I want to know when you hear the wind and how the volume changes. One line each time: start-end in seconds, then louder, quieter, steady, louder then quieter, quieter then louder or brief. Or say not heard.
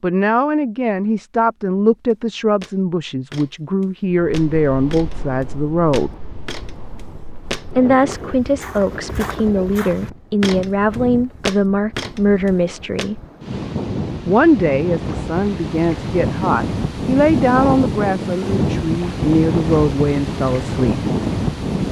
4.1-21.8 louder.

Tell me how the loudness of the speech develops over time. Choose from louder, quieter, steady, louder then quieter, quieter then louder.
steady.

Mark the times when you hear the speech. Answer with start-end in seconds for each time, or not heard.
0.0-6.2, 7.8-13.2, 14.2-20.9.